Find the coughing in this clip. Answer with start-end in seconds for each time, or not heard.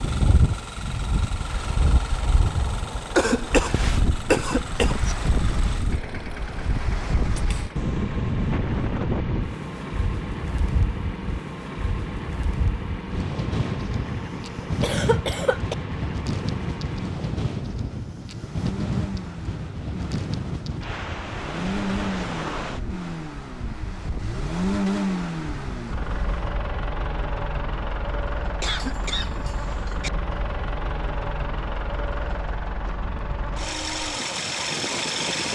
3.1-5.2, 14.6-15.8, 28.6-30.1.